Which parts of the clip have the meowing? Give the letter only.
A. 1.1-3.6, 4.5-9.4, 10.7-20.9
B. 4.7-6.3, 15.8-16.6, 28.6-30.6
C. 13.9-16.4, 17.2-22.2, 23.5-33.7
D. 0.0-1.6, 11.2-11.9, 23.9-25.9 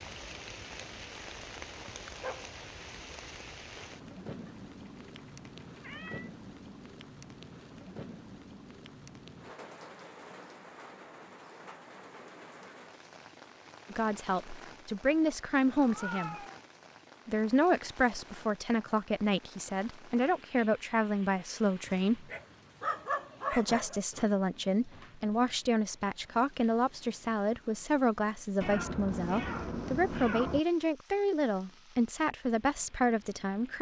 B.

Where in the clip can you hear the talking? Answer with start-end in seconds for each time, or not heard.
13.9-16.4, 17.2-22.2, 23.5-33.7.